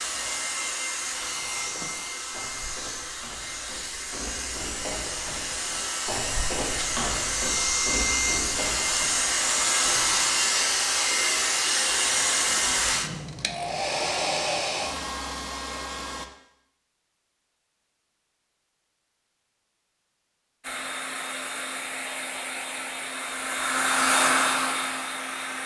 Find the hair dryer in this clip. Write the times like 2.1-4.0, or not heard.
0.0-16.3, 20.6-25.6.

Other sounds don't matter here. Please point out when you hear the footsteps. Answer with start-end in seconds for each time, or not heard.
1.4-10.1.